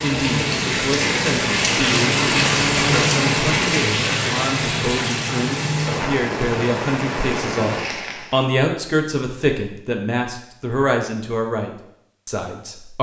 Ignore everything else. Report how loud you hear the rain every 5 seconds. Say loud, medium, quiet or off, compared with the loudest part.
loud, medium, off.